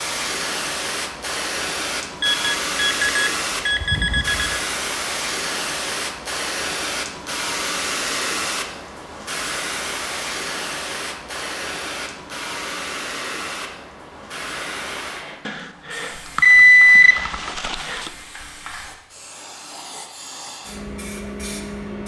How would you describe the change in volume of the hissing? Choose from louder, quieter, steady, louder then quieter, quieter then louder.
quieter.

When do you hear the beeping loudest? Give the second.
17 s.